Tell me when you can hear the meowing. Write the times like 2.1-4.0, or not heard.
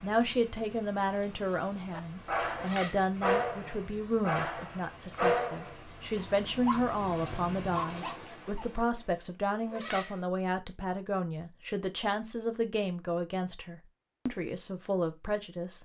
2.5-3.0, 9.5-10.2.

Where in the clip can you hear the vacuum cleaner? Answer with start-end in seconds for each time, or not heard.
not heard.